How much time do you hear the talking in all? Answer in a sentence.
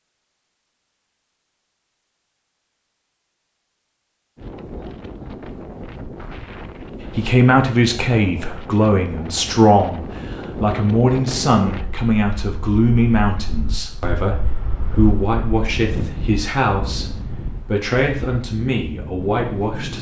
You can hear the talking for 13 seconds altogether.